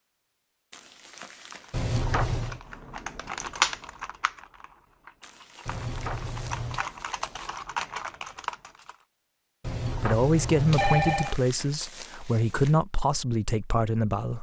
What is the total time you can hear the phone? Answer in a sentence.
The phone can be heard for 4 seconds in total.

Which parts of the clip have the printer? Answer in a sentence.
The printer can't be heard in this clip.